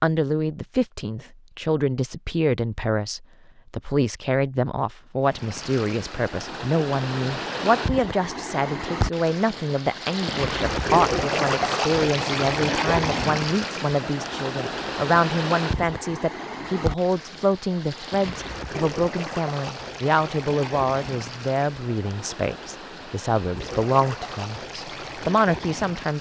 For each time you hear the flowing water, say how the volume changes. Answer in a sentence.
The flowing water can be heard from 5.2 to 26.1 s, getting louder then quieter.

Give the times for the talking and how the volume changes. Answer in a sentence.
The talking can be heard from 0.0 to 26.1 s, at a steady volume.